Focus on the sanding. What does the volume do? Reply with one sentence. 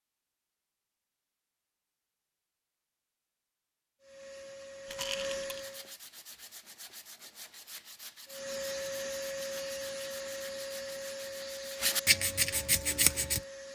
The loudness of the sanding goes up.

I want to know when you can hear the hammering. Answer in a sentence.
The hammering can't be heard in this clip.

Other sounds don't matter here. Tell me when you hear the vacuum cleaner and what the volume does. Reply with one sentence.
The vacuum cleaner can be heard briefly from 4.0 to 6.0 s; and from 8.2 to 13.6 s, getting quieter.